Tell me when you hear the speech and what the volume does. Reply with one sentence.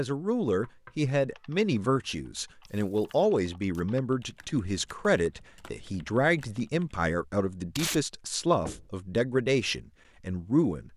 You can hear the speech from 0.0 to 10.9 s, at a steady volume.